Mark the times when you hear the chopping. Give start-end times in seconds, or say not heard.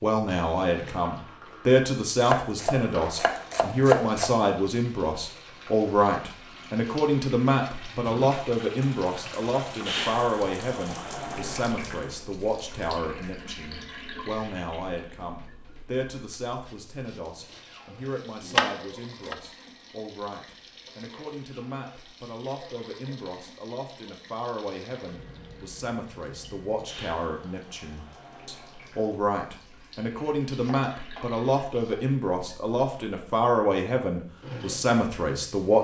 2.2-4.3, 18.4-19.4, 30.4-31.9.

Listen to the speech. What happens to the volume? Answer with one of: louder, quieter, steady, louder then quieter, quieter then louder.
quieter then louder.